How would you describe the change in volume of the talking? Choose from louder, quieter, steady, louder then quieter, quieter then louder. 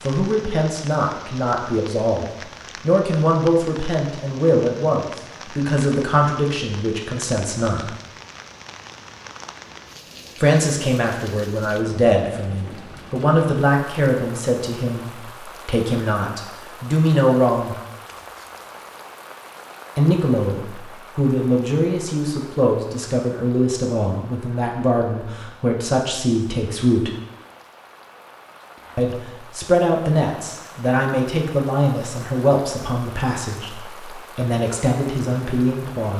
steady.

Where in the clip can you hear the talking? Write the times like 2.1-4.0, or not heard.
0.0-7.9, 10.4-17.8, 19.9-27.1, 28.9-36.1.